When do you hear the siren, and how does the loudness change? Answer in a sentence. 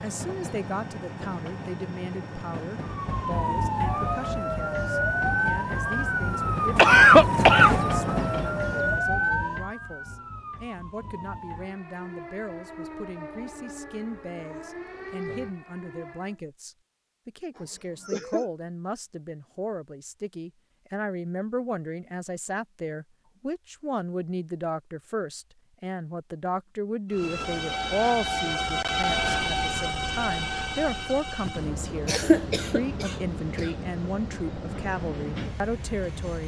You can hear the siren from 2.8 to 16.4 s, getting quieter.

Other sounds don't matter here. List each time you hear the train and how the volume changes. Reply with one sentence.
The train can be heard from 0.0 to 9.2 s, getting louder; and from 27.1 to 36.4 s, getting quieter.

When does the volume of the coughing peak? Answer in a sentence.
The loudest moment of the coughing is at 7 seconds.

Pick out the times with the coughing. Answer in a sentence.
The coughing can be heard from 6.8 to 7.8 s, from 17.6 to 18.4 s and from 32.0 to 33.7 s.